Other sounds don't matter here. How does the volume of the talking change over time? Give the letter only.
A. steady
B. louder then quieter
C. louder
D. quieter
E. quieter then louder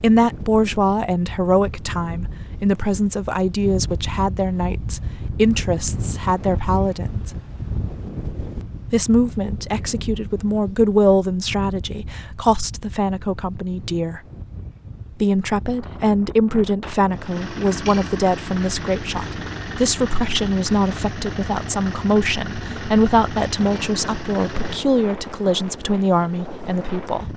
A.